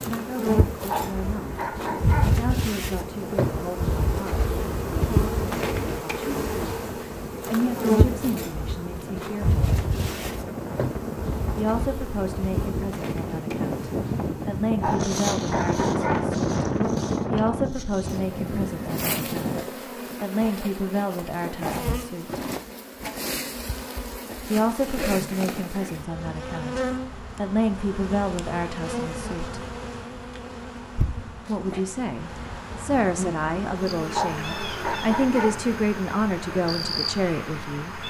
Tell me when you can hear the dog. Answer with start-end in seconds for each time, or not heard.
0.8-2.4, 14.8-16.3, 34.1-35.6.